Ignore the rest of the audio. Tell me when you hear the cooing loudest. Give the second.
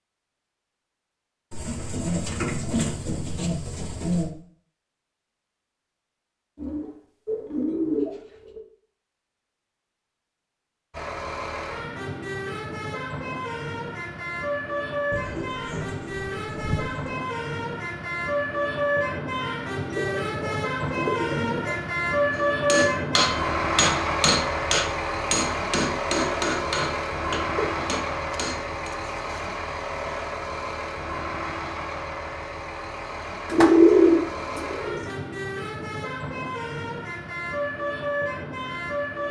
34 s.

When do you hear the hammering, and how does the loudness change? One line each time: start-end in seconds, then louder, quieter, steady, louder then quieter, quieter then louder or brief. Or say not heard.
22.4-29.0 quieter.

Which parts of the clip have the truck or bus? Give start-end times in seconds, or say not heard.
10.9-39.2.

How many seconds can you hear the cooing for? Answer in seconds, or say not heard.
13 s.